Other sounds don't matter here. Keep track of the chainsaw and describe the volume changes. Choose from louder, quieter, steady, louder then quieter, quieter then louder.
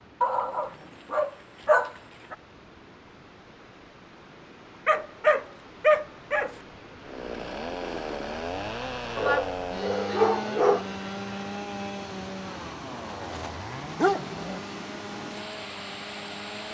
quieter.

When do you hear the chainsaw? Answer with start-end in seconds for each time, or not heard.
7.0-16.6.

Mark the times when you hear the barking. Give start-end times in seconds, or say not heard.
0.2-2.4, 4.8-6.5, 9.2-10.8, 13.3-14.6.